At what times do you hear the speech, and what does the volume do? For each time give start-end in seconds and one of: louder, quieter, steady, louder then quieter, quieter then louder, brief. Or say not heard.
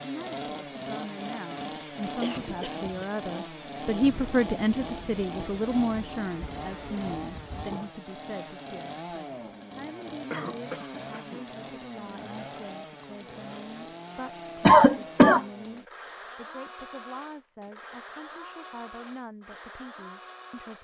0.0-20.7 quieter.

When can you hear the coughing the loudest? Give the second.
15 s.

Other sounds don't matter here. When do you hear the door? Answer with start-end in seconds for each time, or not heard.
not heard.